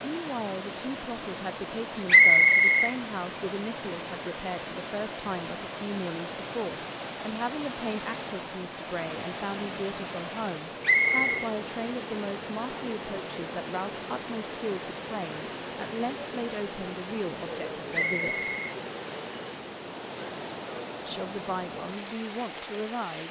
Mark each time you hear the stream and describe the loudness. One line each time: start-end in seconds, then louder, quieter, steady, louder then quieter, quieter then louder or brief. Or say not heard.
0.0-23.2 steady.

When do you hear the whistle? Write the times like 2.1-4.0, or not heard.
2.0-2.9, 10.8-11.5, 17.9-18.8.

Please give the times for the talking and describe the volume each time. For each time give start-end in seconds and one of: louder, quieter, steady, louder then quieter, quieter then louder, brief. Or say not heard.
0.0-18.5 steady
21.1-23.2 brief.